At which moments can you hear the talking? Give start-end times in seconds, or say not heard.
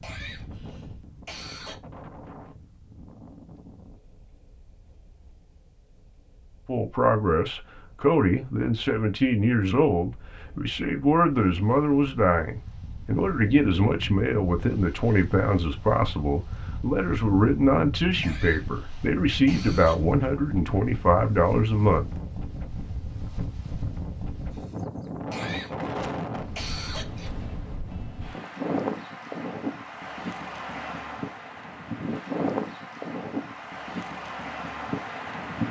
6.7-22.2.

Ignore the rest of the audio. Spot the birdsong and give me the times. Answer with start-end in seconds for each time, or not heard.
not heard.